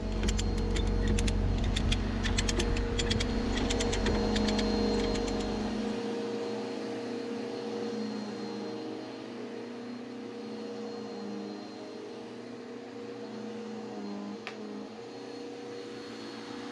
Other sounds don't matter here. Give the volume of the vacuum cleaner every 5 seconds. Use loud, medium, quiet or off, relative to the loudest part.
loud, loud, medium, medium.